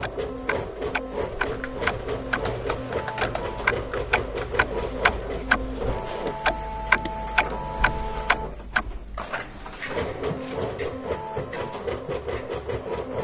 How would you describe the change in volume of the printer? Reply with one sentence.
The volume of the printer stays about the same.